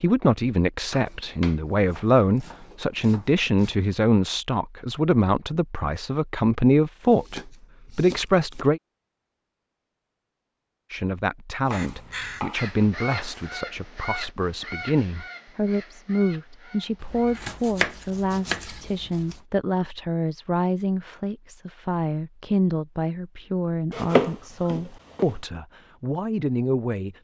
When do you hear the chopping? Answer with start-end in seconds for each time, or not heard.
0.9-3.8, 7.0-8.7, 11.7-13.5, 17.0-19.4, 23.9-25.4.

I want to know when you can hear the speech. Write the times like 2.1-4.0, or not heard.
0.0-8.8, 10.9-27.1.